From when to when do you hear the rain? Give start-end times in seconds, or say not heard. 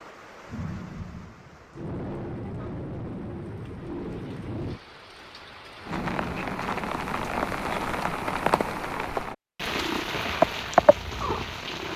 0.0-11.9.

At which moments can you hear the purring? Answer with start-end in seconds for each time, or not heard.
9.7-11.9.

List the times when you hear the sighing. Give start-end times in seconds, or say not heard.
not heard.